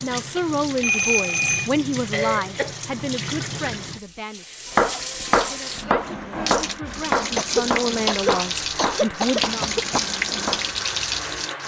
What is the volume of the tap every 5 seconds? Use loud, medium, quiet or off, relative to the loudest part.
medium, loud, loud.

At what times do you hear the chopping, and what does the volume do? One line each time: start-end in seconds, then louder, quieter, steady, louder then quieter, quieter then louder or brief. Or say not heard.
4.7-10.7 quieter.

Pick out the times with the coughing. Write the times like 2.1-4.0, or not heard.
2.1-2.8, 7.3-10.0.